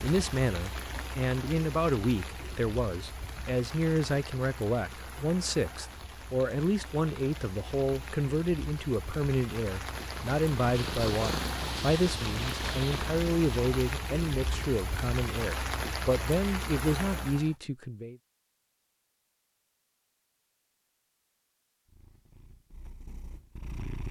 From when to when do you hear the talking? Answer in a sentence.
You can hear the talking from 0.0 to 18.1 s.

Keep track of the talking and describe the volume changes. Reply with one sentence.
The volume of the talking stays about the same.